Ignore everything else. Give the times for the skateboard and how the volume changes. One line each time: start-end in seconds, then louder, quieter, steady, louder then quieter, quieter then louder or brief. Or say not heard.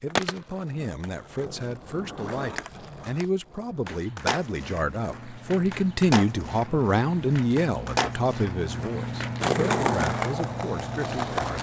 0.1-11.5 louder.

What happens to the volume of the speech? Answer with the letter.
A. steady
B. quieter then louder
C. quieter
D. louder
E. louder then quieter
E.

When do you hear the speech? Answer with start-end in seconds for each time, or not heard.
0.0-11.5.